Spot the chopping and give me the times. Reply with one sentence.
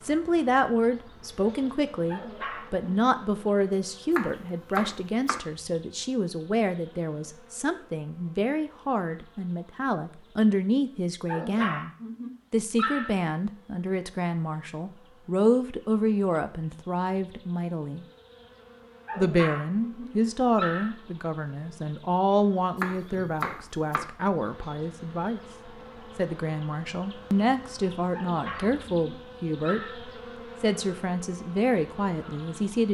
The chopping can be heard from 4.1 to 5.4 s and from 22.8 to 24.1 s.